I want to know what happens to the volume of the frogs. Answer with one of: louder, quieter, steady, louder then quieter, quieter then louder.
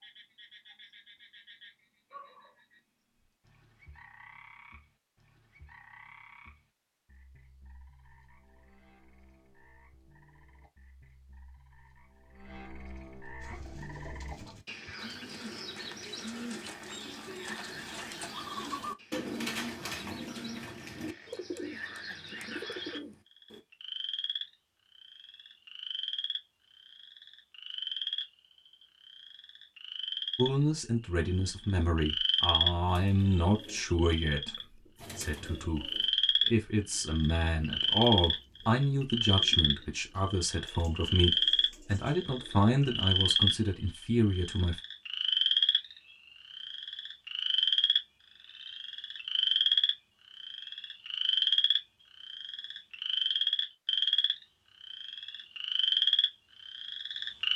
louder.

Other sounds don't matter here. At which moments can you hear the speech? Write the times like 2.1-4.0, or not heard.
30.4-34.5, 35.1-44.8.